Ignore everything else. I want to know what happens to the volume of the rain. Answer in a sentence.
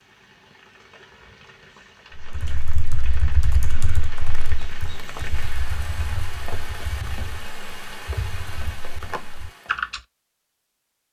The volume of the rain goes up.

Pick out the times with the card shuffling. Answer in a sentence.
You can't hear the card shuffling here.